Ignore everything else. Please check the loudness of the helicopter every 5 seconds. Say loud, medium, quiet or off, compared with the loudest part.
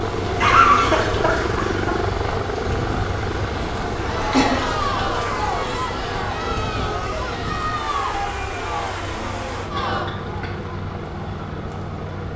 loud, medium, medium.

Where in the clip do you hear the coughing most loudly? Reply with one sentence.
The volume of the coughing peaks at 1 second.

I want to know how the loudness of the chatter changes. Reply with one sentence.
The volume of the chatter goes down.